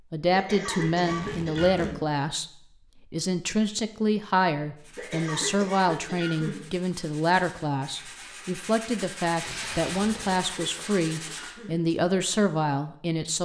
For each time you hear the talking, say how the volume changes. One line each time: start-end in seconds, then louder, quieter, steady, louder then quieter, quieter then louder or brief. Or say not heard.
0.1-2.5 brief
3.1-13.4 steady.